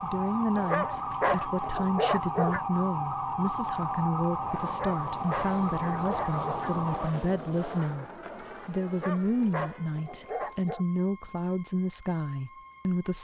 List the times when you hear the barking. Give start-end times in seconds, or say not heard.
0.6-2.6, 4.6-6.8, 8.8-10.8.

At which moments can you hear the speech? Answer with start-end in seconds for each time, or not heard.
0.0-8.1, 8.7-13.1.